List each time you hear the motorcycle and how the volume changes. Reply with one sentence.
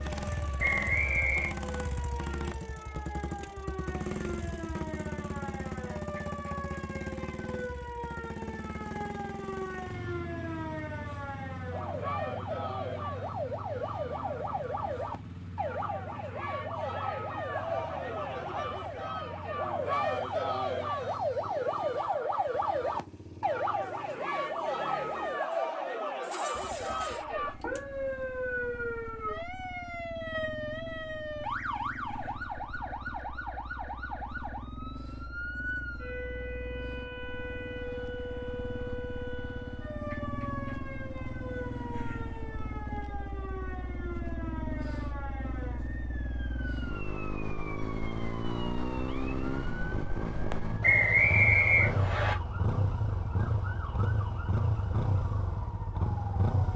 The motorcycle can be heard from 0.0 to 56.7 s, getting quieter then louder.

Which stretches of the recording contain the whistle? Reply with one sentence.
You can hear the whistle from 0.6 to 1.5 s and from 50.8 to 52.4 s.